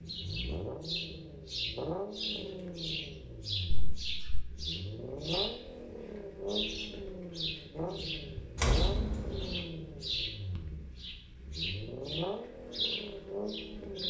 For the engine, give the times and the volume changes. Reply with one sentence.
You can hear the engine from 0.0 to 14.0 s, at a steady volume.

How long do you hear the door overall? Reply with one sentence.
You can hear the door for 2 seconds altogether.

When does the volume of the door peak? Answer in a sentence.
The volume of the door peaks at 9 seconds.